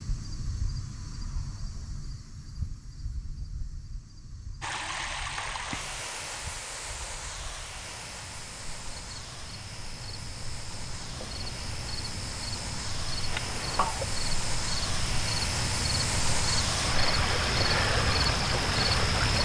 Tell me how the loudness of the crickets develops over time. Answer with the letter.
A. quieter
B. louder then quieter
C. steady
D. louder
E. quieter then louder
E.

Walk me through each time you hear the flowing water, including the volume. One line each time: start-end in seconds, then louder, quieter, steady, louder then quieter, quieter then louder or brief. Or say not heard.
4.6-19.4 quieter then louder.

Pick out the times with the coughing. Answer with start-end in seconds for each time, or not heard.
13.3-14.1.